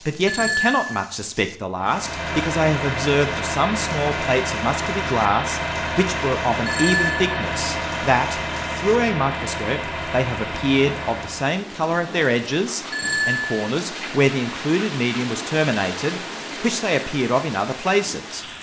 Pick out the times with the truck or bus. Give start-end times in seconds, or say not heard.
1.8-11.6.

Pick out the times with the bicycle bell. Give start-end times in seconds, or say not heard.
0.2-1.1, 6.7-7.3, 12.9-13.6.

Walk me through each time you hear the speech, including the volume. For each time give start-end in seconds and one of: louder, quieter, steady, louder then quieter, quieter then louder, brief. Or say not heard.
0.1-18.4 steady.